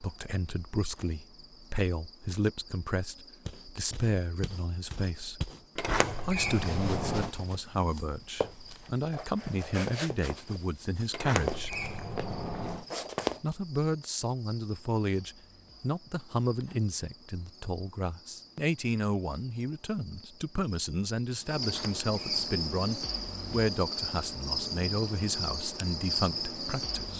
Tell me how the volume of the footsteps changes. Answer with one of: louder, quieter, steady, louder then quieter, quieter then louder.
louder.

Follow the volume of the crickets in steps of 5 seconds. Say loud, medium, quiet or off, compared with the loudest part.
quiet, quiet, quiet, quiet, loud, loud.